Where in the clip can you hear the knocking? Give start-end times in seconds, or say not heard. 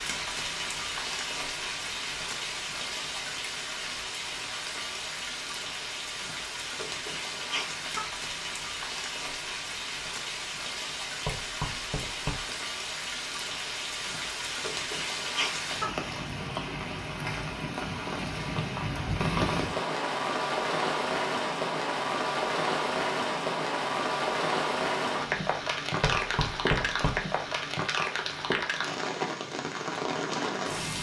11.2-12.6, 26.0-27.2.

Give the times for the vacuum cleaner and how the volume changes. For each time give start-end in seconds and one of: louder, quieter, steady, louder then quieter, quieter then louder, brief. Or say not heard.
not heard.